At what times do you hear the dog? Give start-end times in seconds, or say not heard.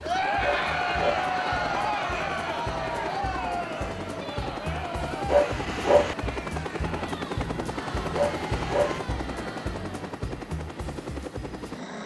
0.4-1.3, 5.2-6.2, 8.1-9.0.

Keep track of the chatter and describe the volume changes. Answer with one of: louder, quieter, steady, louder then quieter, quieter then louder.
quieter.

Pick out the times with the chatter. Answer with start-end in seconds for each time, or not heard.
0.0-10.1.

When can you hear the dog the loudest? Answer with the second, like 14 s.
6 s.